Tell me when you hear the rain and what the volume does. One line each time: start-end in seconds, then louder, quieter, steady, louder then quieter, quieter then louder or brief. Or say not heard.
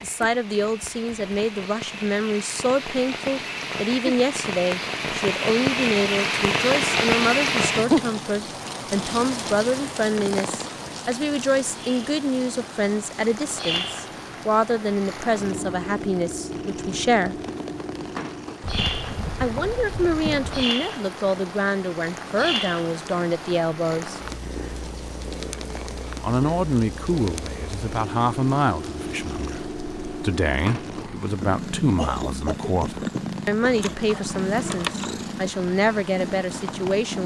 0.0-37.2 quieter.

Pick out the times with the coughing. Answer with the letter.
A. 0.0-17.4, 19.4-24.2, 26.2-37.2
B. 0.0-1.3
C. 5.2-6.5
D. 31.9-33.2
D.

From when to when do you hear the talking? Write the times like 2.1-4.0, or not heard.
0.0-17.4, 19.4-24.2, 26.2-37.2.